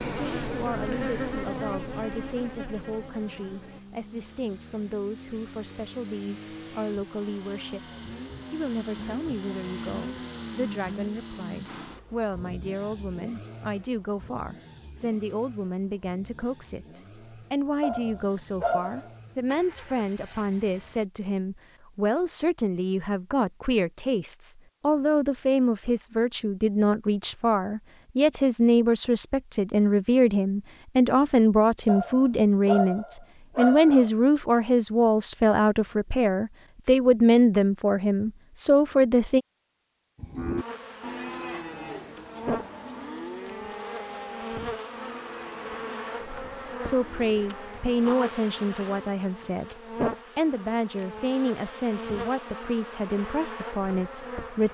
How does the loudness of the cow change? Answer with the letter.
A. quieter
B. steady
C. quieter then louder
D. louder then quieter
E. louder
A.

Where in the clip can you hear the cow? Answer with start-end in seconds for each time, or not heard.
40.1-47.8.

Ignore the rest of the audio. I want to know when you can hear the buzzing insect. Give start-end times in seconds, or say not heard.
0.0-3.8, 40.5-54.6.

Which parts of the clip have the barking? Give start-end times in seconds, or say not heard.
17.8-19.1, 31.9-34.1.